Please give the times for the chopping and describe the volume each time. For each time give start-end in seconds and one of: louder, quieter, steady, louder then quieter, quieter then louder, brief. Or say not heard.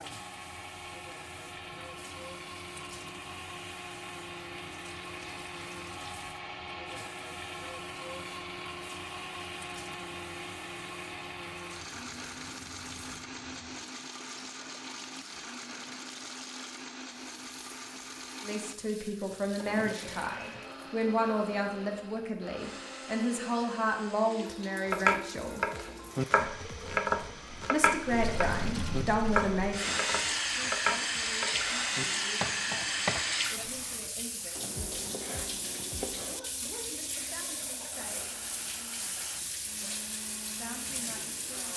24.9-36.4 quieter.